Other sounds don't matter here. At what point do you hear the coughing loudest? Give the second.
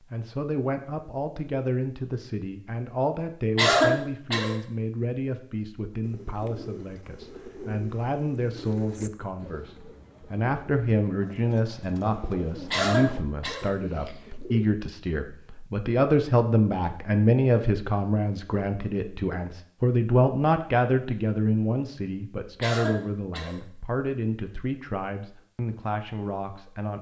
4 s.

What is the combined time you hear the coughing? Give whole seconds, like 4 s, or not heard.
3 s.